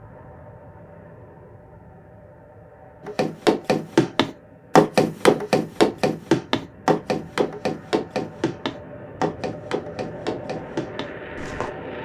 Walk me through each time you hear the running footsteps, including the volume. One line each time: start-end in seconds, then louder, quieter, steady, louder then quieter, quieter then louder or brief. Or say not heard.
3.0-11.7 quieter.